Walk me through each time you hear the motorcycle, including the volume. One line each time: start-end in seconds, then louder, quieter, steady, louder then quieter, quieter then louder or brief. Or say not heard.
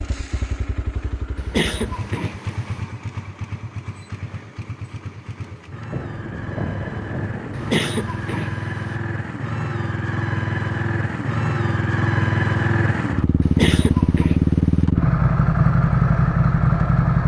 0.0-17.2 louder.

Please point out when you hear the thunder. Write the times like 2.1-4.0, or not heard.
5.9-7.8.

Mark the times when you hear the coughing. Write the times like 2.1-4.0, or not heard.
1.4-2.8, 7.5-9.0, 13.4-14.8.